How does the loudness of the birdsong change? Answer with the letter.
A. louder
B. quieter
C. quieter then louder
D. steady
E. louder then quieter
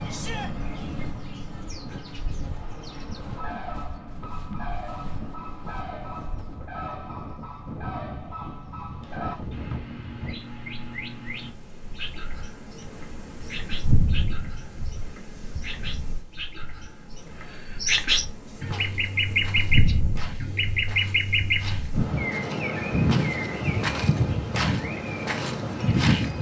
A.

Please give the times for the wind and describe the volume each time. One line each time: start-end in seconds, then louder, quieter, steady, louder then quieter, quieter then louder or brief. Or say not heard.
0.0-26.3 louder.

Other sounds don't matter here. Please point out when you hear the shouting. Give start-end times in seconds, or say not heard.
0.1-0.5, 18.4-18.9.